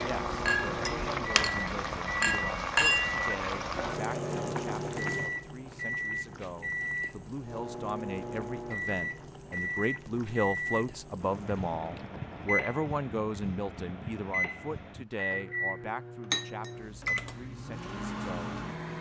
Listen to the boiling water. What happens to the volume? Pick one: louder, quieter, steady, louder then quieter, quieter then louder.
quieter.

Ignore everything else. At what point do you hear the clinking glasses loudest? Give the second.
3 s.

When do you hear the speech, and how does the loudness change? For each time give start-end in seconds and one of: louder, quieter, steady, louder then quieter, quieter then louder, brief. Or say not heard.
0.0-18.9 louder then quieter.